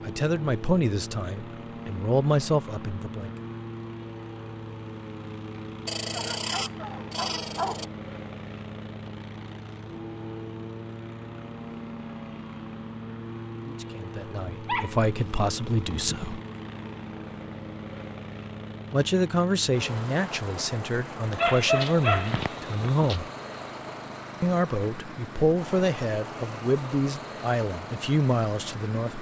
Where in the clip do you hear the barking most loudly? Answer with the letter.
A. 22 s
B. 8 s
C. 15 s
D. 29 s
A.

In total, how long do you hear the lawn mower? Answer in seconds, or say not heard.
29 s.